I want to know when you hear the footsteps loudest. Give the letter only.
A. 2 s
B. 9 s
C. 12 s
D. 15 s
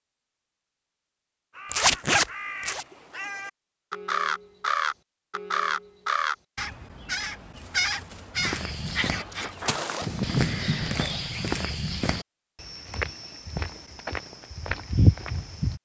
D.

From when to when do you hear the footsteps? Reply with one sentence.
The footsteps can be heard from 8.3 to 15.8 s.